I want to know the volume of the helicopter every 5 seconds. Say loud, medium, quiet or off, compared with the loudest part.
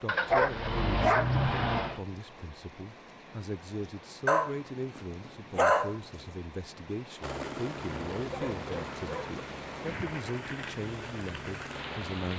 off, loud, loud.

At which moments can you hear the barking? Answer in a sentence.
You can hear the barking from 0.1 to 2.0 s, from 4.2 to 6.0 s and from 8.3 to 9.4 s.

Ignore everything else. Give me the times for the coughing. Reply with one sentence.
You can't hear the coughing here.